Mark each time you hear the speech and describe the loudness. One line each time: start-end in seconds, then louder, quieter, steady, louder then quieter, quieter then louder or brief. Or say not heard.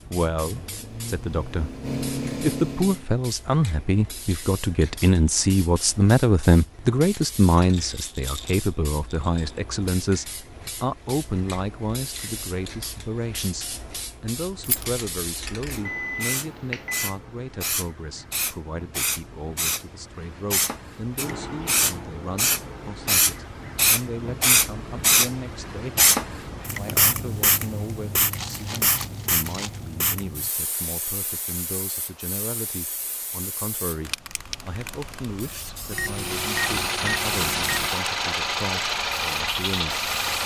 0.1-40.4 quieter.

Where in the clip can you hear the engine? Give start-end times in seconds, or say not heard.
0.0-3.1, 36.0-40.4.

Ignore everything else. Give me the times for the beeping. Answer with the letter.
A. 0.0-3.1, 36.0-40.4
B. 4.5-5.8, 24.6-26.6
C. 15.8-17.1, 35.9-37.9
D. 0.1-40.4
C.